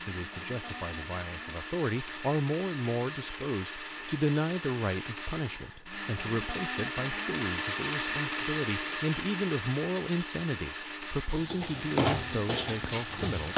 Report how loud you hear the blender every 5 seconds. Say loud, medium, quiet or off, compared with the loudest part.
medium, loud, medium.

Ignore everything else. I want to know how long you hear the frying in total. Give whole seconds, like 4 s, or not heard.
2 s.